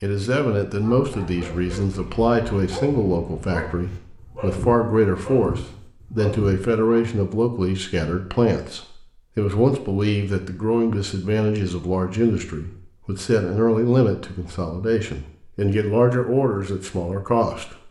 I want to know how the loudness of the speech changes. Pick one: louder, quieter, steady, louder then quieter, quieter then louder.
steady.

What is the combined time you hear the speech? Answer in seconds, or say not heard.
18 s.